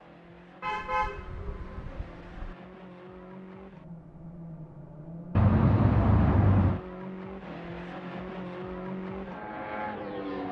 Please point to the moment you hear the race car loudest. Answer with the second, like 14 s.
10 s.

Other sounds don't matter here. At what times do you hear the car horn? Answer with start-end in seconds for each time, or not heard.
0.6-2.5, 5.3-6.8.